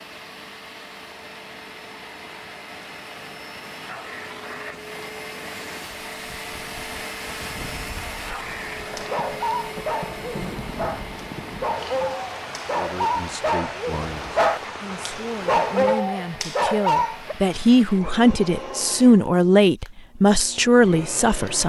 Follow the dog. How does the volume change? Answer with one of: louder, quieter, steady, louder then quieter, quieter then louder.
louder.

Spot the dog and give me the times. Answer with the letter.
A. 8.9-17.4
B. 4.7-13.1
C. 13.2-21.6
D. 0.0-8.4
A.